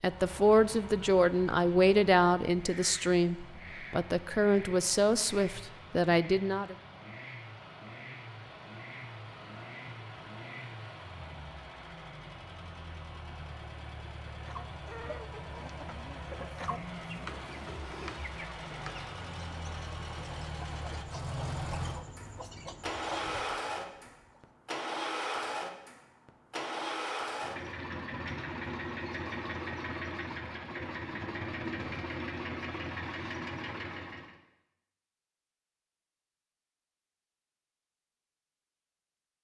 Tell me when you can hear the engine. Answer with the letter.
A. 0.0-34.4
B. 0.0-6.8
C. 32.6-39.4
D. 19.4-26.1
A.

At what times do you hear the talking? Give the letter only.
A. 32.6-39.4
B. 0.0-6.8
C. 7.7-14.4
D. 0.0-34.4
B.